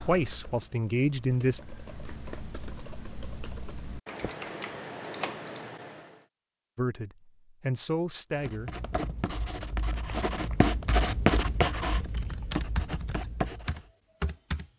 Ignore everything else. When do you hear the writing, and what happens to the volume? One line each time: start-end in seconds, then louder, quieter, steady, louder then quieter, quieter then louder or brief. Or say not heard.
8.3-13.8 louder then quieter.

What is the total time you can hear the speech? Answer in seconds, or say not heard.
4 s.